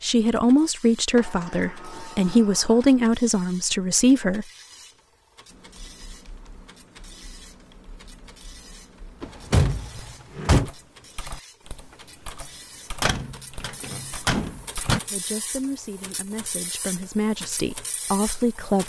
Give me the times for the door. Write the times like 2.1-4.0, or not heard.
1.1-3.0, 9.2-10.7, 13.0-15.0.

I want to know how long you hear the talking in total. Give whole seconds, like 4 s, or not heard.
8 s.